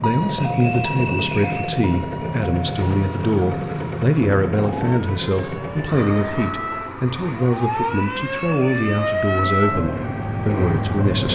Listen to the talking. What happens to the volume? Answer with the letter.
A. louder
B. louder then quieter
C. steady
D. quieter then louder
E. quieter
C.